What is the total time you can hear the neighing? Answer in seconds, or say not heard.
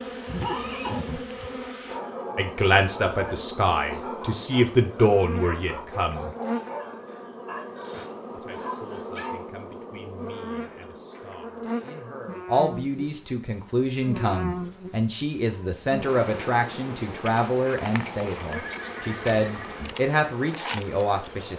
3 s.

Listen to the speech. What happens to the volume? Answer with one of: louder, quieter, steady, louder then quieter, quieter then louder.
quieter then louder.